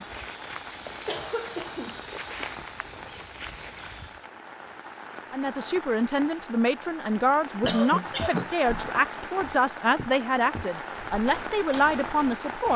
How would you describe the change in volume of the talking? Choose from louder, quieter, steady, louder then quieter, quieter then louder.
steady.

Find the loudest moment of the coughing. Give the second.
8 s.